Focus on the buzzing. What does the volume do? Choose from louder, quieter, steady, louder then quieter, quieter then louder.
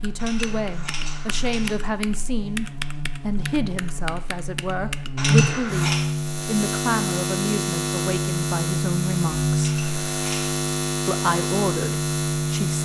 louder.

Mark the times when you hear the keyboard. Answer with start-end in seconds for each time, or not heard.
0.0-5.3.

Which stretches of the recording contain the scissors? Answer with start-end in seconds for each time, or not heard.
0.1-1.8, 5.2-6.0, 9.6-10.6.